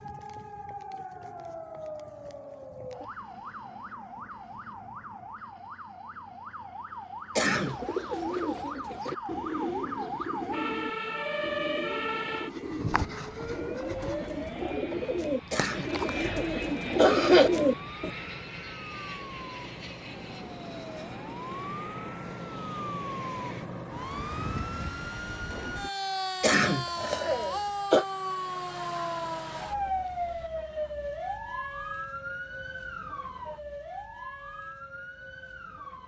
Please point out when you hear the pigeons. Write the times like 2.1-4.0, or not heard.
7.6-18.1.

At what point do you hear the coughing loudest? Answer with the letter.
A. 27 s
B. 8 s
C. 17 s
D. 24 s
C.